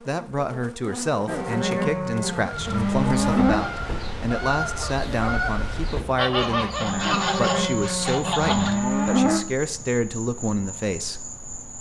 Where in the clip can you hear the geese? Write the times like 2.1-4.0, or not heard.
2.4-8.8.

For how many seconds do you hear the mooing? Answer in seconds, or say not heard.
5 s.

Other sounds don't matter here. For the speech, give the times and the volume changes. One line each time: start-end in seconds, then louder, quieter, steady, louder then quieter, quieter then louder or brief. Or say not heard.
0.1-11.3 steady.